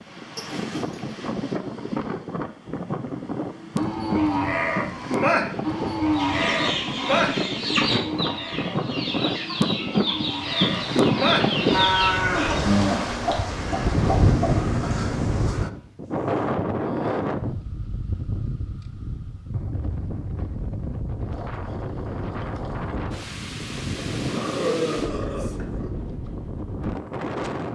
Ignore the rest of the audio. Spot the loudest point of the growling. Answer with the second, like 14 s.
25 s.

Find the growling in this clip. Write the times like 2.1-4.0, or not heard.
0.3-1.1, 24.2-25.9.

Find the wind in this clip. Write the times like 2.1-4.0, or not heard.
0.0-27.6.